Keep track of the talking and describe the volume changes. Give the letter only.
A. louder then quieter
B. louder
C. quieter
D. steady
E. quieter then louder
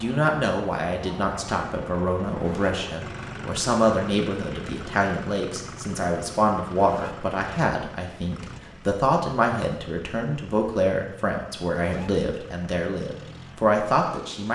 D.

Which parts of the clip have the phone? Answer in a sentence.
The phone can't be heard in this clip.